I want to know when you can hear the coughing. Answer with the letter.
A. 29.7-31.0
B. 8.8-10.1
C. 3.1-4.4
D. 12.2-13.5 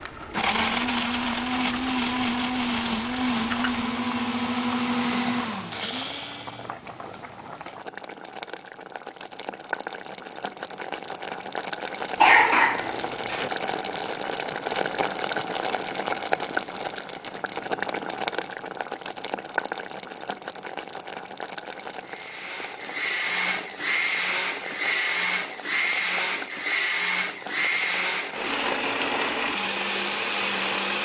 D.